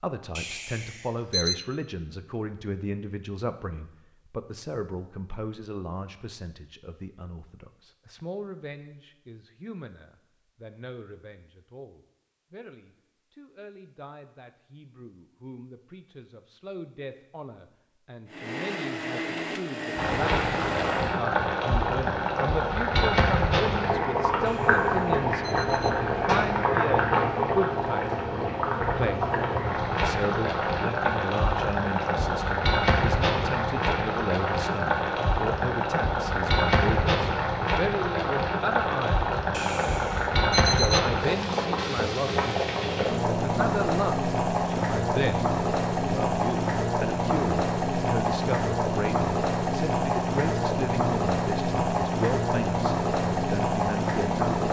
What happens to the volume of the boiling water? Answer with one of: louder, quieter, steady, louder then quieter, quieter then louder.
steady.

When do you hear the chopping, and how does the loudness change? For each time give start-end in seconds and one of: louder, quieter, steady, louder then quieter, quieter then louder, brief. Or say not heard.
not heard.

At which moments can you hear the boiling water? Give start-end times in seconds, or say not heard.
19.9-54.6.